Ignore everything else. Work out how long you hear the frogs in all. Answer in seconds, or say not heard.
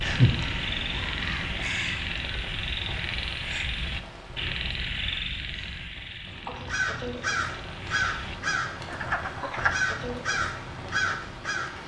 10 s.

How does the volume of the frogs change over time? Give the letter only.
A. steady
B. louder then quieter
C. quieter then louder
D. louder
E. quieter
C.